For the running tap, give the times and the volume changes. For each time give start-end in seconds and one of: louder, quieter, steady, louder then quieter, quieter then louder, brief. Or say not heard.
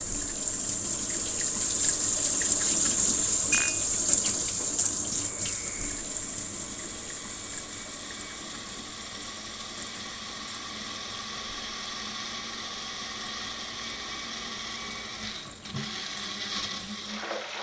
0.0-17.5 quieter.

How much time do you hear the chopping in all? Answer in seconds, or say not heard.
not heard.